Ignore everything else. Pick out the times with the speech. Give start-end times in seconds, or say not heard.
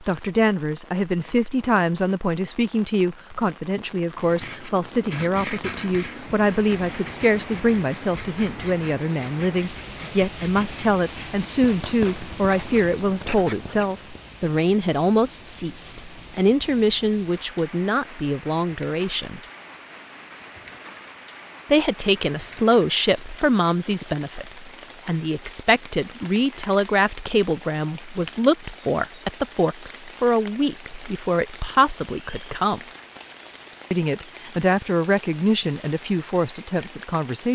0.0-19.4, 21.7-32.8, 33.9-37.5.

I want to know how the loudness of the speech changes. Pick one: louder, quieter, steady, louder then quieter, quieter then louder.
steady.